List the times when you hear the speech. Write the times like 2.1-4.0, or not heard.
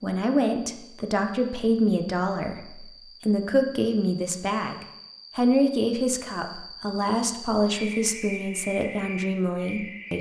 0.0-10.1.